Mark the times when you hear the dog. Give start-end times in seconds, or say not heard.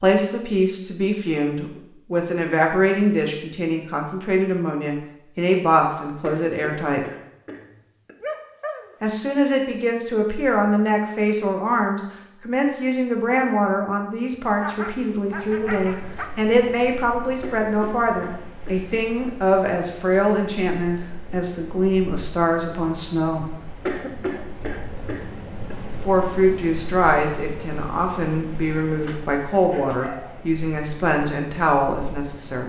8.2-8.9, 14.6-16.2, 29.0-30.4.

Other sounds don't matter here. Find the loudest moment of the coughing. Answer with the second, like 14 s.
24 s.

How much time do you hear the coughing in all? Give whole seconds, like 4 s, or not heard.
6 s.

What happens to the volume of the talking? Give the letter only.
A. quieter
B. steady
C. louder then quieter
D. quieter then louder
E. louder
B.